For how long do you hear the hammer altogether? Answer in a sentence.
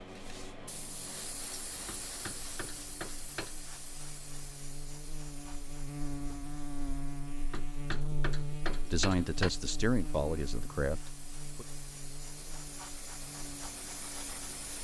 You can hear the hammer for 4 seconds altogether.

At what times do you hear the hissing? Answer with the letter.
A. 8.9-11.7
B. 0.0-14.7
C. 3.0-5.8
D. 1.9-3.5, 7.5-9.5
B.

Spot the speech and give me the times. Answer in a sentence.
The speech can be heard from 8.9 to 11.7 s.